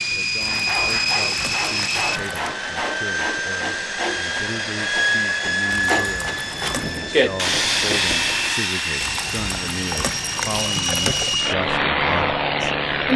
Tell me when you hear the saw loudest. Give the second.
7 s.